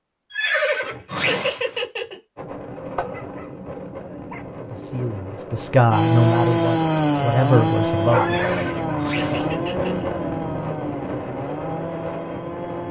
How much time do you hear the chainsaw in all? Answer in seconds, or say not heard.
7 s.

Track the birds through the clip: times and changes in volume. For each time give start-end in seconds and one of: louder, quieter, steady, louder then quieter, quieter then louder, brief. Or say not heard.
not heard.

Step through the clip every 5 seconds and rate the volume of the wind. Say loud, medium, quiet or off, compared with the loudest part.
medium, loud, loud.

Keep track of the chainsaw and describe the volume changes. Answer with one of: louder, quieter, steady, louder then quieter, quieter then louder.
quieter.